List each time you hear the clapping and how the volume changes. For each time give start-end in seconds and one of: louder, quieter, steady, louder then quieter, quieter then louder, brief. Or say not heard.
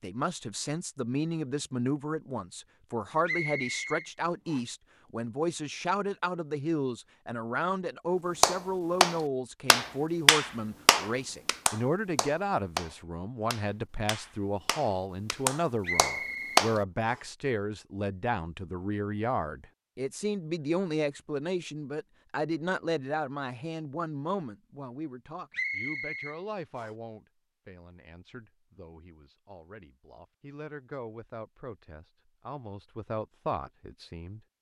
8.4-16.8 quieter then louder.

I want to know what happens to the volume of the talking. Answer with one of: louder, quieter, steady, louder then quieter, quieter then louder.
quieter.